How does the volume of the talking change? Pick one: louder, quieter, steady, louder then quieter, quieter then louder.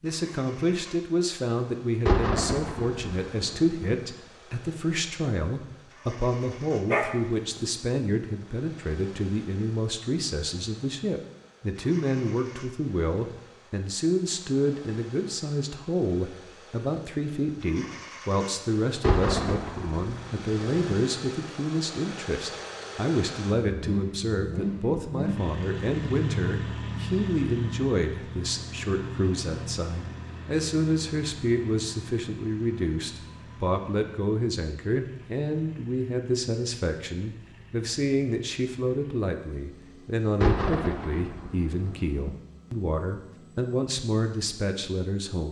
steady.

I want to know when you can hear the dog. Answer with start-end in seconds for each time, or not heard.
6.8-7.7.